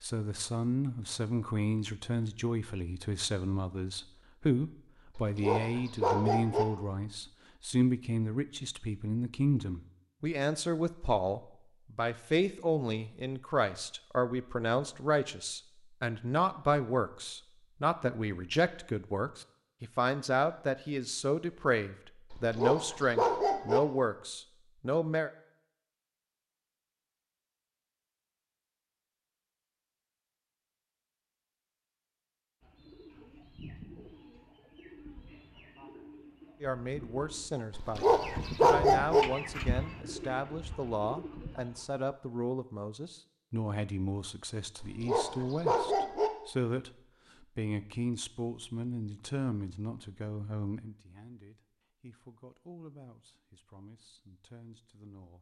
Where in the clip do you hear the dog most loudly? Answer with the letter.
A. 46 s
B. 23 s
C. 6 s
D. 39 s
D.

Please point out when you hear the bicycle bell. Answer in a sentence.
You can't hear the bicycle bell here.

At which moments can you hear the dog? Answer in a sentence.
The dog can be heard from 5.2 to 6.7 s, from 22.3 to 23.8 s, from 37.7 to 39.2 s and from 44.8 to 46.3 s.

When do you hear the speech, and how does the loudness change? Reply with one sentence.
The speech can be heard from 0.0 to 25.3 s, at a steady volume; and from 36.6 to 55.3 s, getting quieter.